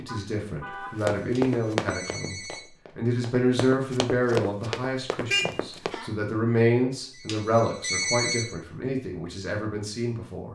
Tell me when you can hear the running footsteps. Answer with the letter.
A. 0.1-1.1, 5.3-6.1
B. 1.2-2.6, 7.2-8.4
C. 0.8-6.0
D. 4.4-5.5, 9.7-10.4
C.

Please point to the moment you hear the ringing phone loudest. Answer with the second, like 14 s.
8 s.